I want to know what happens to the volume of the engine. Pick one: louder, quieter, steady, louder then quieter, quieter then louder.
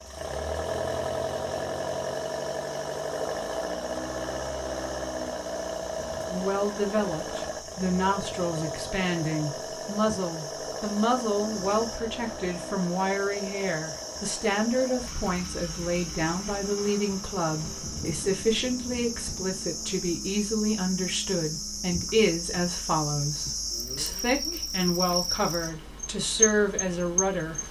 quieter.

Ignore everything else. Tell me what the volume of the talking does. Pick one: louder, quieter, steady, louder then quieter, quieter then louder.
steady.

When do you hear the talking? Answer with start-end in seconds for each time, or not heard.
6.3-27.6.